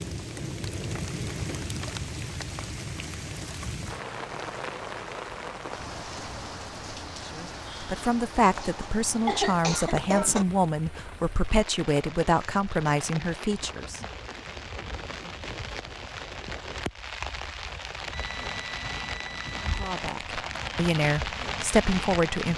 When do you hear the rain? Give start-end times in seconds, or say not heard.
0.0-22.5.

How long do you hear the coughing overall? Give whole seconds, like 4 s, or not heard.
2 s.